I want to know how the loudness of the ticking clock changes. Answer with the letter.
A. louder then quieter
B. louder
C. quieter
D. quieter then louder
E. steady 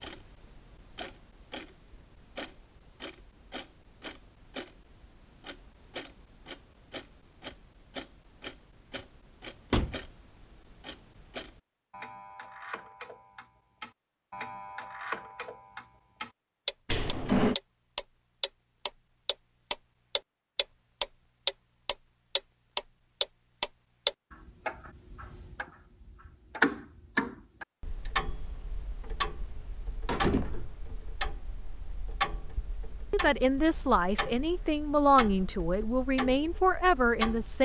A.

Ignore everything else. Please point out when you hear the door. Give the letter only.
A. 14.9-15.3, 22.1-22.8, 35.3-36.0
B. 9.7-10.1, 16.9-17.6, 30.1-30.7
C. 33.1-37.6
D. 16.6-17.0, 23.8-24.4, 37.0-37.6
B.